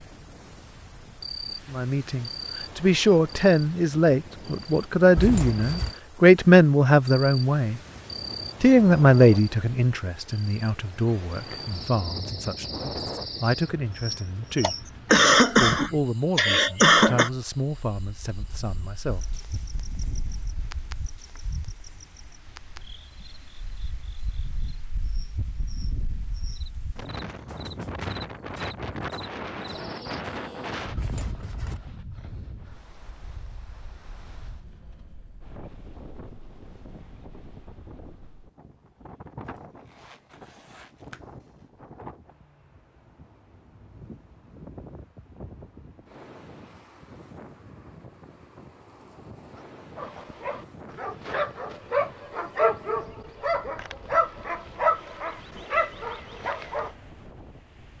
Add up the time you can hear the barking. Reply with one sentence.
The barking can be heard for 7 seconds in total.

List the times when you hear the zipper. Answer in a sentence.
The zipper can be heard from 5.2 to 6.0 s, from 30.9 to 31.8 s and from 39.9 to 41.2 s.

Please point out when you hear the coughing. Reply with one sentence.
You can hear the coughing from 14.6 to 17.3 s.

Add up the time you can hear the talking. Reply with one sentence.
You can hear the talking for 16 seconds altogether.